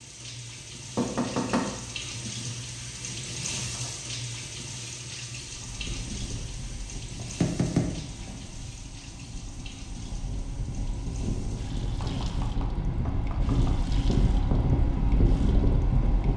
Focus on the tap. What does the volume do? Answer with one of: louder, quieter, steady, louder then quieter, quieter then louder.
quieter.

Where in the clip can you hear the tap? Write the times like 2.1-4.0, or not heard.
0.0-16.3.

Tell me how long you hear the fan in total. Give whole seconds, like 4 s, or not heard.
11 s.